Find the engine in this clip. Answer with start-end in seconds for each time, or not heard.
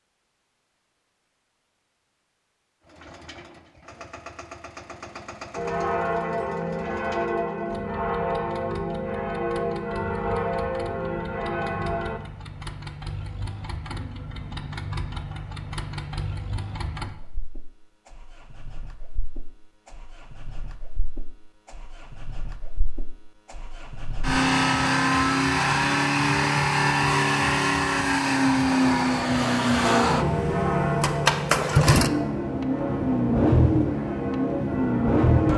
2.9-35.5.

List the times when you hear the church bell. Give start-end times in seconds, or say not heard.
5.5-12.2, 29.8-35.5.